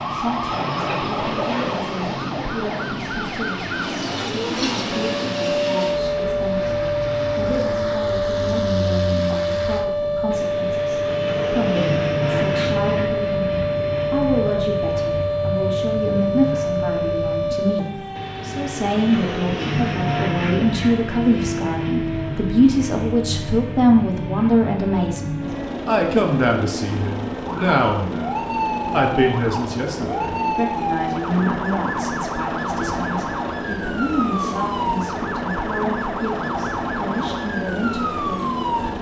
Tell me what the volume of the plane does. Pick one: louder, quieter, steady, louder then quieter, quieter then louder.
steady.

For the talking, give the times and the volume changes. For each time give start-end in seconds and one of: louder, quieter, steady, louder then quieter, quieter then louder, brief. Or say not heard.
0.0-38.9 louder then quieter.